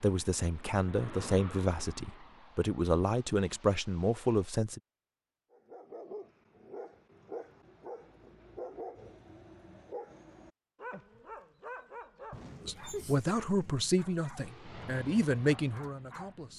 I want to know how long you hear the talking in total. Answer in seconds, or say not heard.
9 s.